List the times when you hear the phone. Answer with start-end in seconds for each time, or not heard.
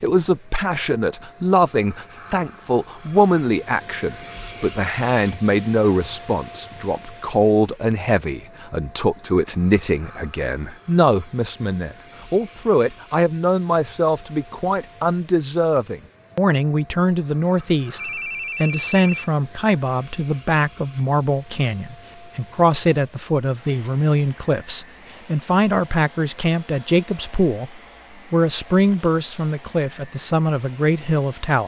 17.9-19.1.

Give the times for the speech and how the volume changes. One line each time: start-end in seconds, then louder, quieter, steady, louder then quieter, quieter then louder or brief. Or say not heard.
0.0-31.6 steady.